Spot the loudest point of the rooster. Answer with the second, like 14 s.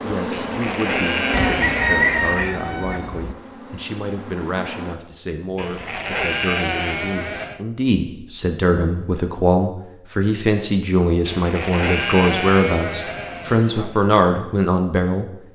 2 s.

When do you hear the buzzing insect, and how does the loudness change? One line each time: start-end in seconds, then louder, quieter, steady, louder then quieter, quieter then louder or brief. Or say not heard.
0.0-5.0 quieter.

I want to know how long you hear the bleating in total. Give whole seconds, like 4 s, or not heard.
7 s.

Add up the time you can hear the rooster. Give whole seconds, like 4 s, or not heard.
2 s.